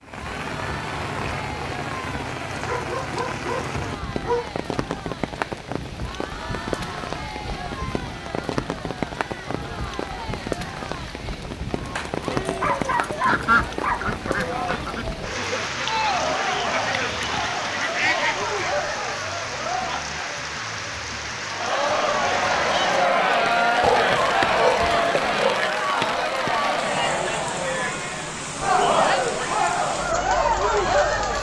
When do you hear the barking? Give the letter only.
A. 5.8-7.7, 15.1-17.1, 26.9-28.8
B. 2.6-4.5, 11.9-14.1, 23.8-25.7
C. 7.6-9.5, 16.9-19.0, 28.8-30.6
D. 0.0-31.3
B.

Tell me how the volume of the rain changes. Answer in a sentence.
The volume of the rain stays about the same.